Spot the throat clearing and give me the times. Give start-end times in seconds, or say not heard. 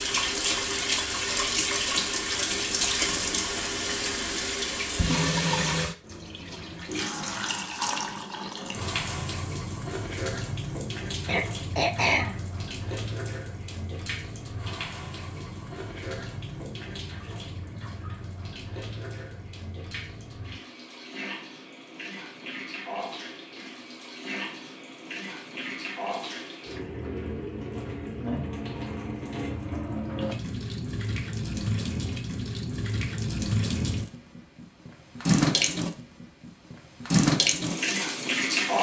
11.2-12.4.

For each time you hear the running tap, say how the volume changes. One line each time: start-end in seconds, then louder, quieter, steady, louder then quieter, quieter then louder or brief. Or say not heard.
0.0-38.7 quieter then louder.